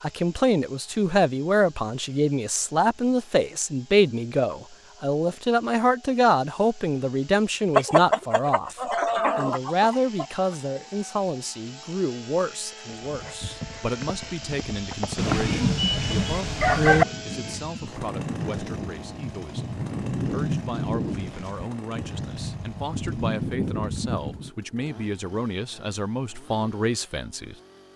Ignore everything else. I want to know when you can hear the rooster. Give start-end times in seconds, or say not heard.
7.8-10.2, 15.2-17.1.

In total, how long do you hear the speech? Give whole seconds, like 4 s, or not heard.
28 s.